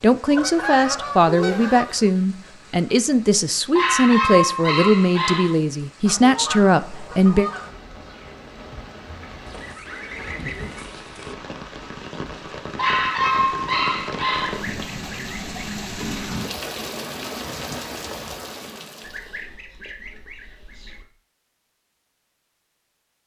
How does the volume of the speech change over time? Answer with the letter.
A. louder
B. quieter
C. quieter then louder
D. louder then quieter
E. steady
E.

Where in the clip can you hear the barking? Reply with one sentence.
The barking can be heard from 3.8 to 5.5 s and from 12.8 to 14.6 s.